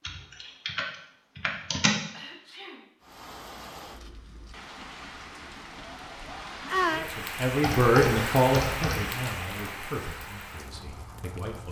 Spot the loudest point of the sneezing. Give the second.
7 s.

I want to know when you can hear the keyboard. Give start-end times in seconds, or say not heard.
0.1-1.9, 7.6-9.2.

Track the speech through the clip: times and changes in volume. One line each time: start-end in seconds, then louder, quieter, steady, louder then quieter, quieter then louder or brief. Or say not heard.
6.8-11.6 quieter.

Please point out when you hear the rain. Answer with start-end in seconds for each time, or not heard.
3.0-11.6.